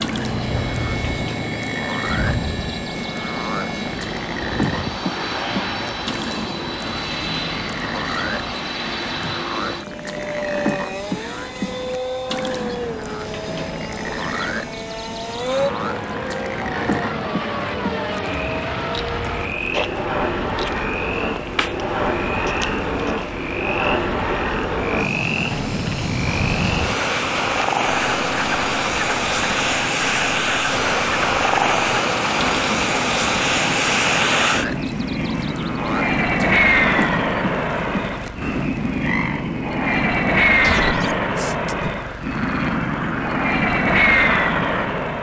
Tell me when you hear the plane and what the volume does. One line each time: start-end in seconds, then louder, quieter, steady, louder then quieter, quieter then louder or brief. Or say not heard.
0.0-45.1 louder.